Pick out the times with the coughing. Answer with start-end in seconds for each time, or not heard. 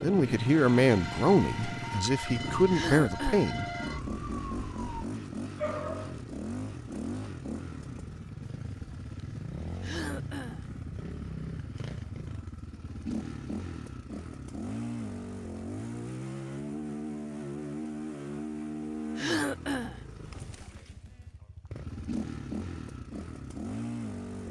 2.7-3.5, 9.8-10.7, 19.1-20.0.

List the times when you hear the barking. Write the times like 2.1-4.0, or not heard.
5.5-6.2.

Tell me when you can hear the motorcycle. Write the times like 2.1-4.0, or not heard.
0.0-24.4.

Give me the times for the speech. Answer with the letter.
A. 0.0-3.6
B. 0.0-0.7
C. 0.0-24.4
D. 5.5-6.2
A.